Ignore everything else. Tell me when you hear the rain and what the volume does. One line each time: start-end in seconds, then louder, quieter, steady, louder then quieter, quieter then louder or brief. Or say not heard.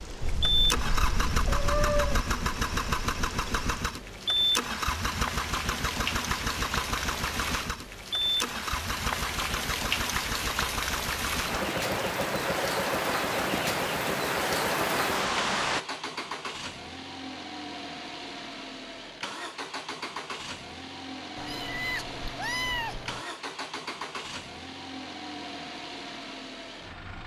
0.0-15.8 louder.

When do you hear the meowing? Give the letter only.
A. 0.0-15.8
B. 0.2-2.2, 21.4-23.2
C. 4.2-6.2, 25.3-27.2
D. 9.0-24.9
B.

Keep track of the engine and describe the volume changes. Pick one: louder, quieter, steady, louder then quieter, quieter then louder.
quieter.